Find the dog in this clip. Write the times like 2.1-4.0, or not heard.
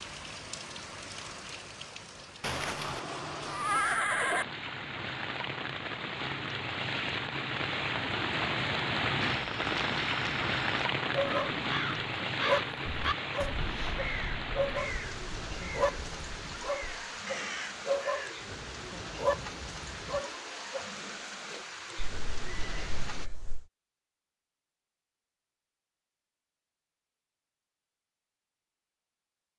11.1-11.6, 12.2-15.0, 15.6-20.9.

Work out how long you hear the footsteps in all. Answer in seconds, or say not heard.
not heard.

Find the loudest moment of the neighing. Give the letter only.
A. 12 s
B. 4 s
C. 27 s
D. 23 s
B.